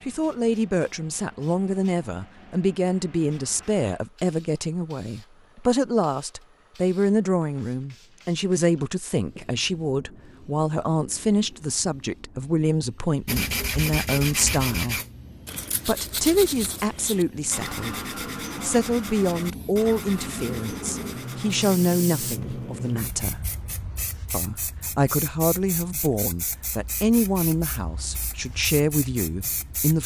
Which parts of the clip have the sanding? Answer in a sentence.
The sanding can be heard from 13.2 to 22.6 s.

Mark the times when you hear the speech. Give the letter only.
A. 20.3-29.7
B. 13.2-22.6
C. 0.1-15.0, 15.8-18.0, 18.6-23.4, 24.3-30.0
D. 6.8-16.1
C.